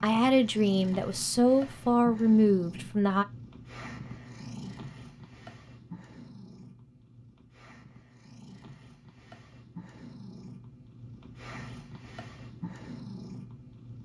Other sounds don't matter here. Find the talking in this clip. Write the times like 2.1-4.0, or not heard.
0.0-3.2.